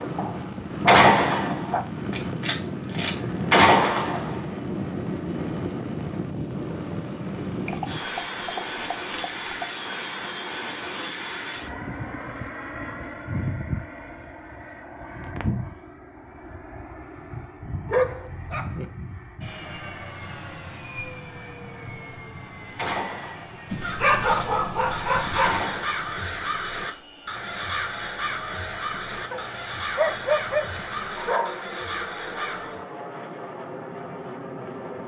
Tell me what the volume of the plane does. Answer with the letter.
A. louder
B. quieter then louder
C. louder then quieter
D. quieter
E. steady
D.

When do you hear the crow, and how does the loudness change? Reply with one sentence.
You can hear the crow from 23.8 to 32.9 s, at a steady volume.